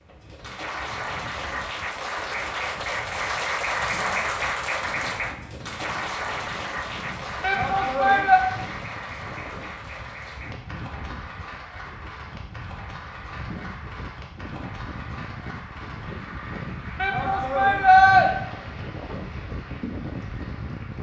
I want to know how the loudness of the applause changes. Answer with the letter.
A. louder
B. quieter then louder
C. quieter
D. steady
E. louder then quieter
C.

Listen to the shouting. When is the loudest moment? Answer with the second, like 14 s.
18 s.